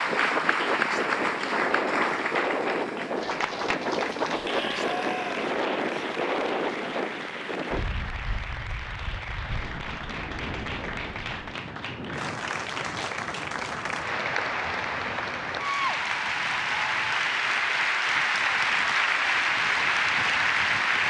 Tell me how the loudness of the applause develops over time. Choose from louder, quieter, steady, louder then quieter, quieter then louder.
quieter then louder.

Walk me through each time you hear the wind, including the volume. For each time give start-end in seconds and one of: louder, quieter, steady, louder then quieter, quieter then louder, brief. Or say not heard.
0.0-21.0 quieter.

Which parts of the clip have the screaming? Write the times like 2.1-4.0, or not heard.
4.4-5.4.